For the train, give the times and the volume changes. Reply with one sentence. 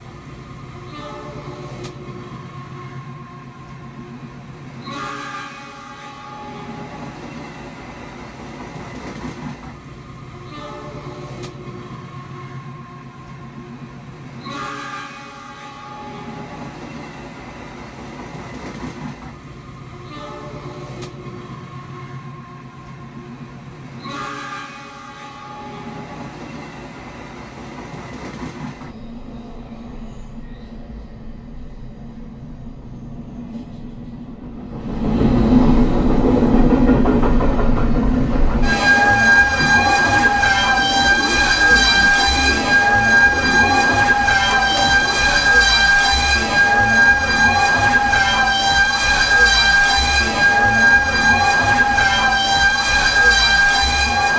You can hear the train from 0.0 to 54.3 s, getting louder.